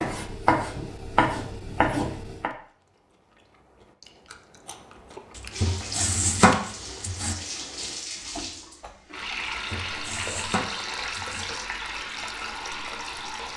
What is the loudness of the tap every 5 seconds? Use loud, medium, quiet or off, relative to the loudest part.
off, loud, loud.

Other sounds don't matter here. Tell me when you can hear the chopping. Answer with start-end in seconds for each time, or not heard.
0.0-2.5, 5.3-7.3, 9.7-11.4.